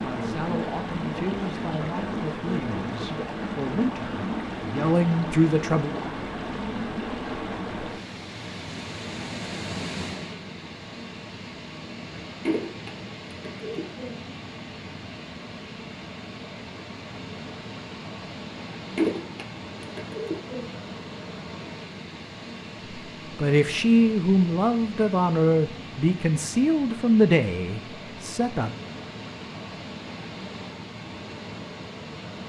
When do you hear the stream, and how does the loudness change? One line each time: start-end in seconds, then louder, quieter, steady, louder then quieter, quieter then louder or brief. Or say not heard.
0.0-32.4 quieter.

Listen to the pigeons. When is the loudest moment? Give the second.
19 s.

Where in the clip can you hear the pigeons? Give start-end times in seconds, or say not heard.
12.4-14.2, 18.9-20.7.